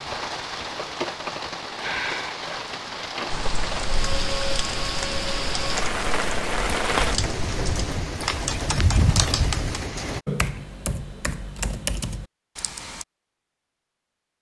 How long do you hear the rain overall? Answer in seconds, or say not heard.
10 s.